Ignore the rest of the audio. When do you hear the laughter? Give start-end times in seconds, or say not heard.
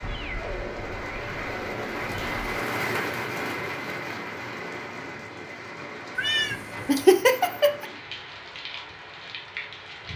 6.5-7.8.